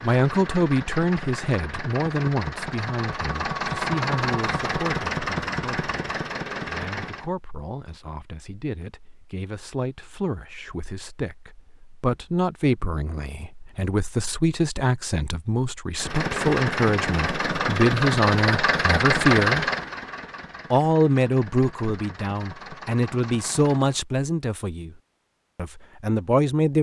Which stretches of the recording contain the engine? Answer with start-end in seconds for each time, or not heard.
0.0-7.3, 15.9-24.0.